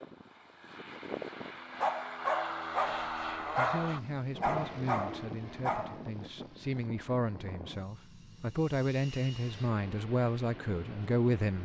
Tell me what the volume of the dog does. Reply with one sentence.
The volume of the dog goes down, then up.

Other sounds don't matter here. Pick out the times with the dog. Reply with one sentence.
The dog can be heard from 1.8 to 6.0 s.